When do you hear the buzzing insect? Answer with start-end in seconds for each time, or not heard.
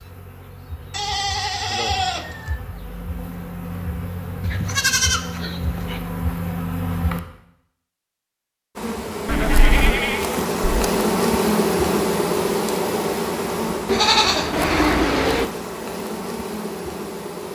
0.0-7.2, 8.8-17.5.